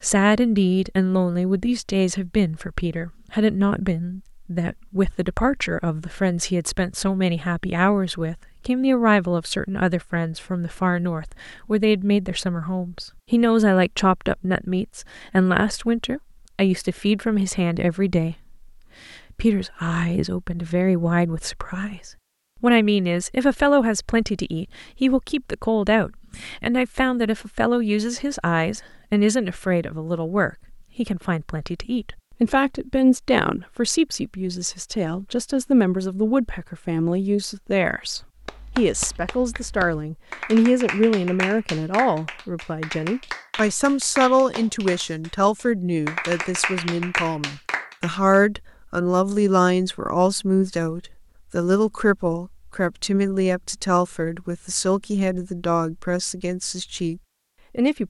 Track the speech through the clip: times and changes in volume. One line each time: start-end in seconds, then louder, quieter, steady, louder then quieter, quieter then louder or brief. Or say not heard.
0.0-58.0 steady.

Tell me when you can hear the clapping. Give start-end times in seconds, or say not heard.
38.4-48.2.